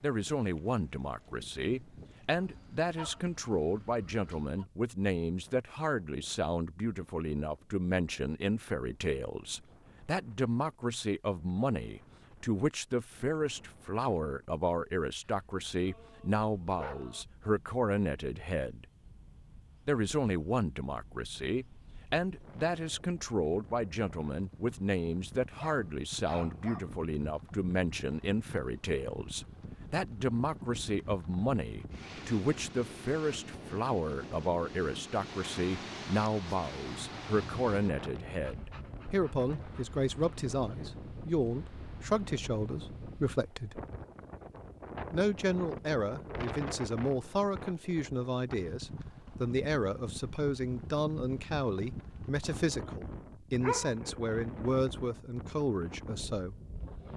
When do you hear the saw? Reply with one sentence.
You can't hear the saw here.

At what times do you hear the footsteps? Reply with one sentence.
The footsteps can't be heard in this clip.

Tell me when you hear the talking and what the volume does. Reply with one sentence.
The talking can be heard from 0.0 to 18.9 s, at a steady volume; from 19.9 to 43.8 s, at a steady volume; and from 45.1 to 56.5 s, at a steady volume.